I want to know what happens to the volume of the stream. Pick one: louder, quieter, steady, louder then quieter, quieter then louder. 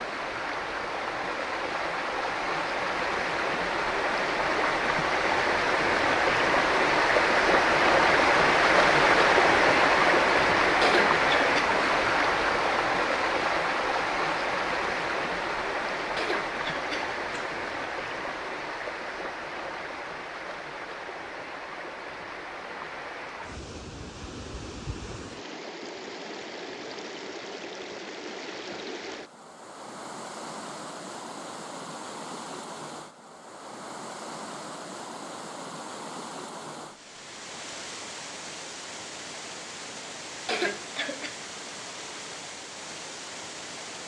quieter.